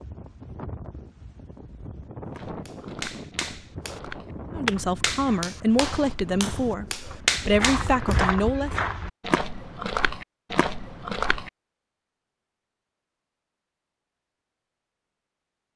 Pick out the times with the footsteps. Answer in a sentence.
The footsteps can be heard from 2.3 to 11.5 s.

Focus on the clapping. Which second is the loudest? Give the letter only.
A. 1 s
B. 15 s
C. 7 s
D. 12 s
C.